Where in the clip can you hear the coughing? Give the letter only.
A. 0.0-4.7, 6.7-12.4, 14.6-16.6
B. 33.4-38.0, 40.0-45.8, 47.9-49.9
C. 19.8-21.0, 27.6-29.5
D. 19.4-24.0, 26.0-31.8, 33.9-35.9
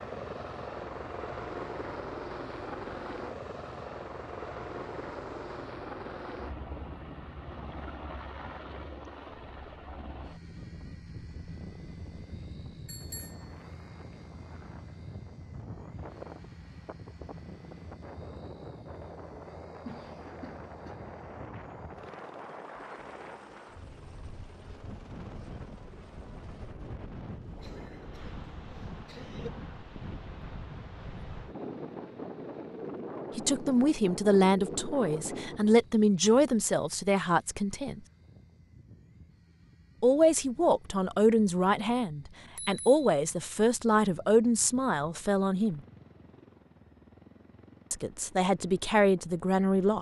C.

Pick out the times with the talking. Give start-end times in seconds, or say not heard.
33.4-38.0, 40.0-45.8, 47.9-49.9.